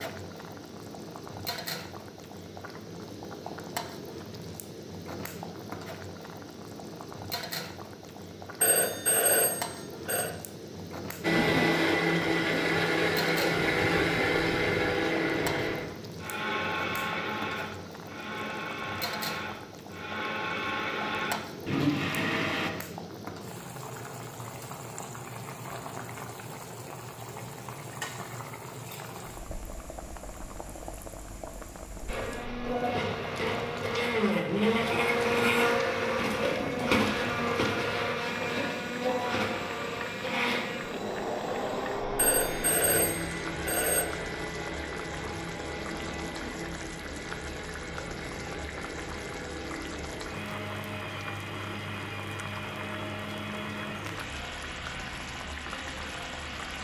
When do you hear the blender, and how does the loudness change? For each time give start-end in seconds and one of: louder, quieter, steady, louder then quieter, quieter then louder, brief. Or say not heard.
11.2-22.7 quieter then louder
32.0-56.7 quieter.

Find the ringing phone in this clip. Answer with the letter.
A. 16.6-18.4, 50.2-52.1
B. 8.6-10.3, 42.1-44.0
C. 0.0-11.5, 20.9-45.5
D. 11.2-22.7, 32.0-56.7
B.